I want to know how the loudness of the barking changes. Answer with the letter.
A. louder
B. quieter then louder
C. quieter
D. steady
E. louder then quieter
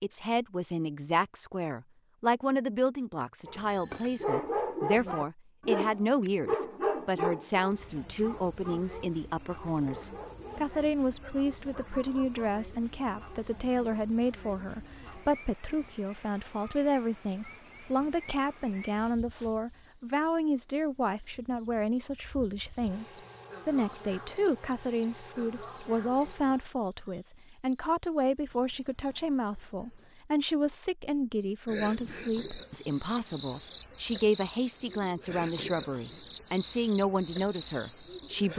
C.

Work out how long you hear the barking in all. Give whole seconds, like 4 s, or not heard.
9 s.